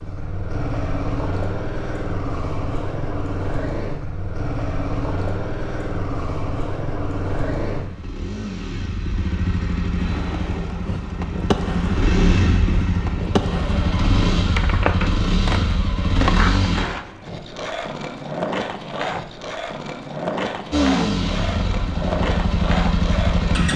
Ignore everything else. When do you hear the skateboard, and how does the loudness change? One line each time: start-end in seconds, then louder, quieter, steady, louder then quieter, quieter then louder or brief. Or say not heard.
9.9-23.7 steady.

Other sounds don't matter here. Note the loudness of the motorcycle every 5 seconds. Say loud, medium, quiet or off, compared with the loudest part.
medium, medium, loud, loud, loud.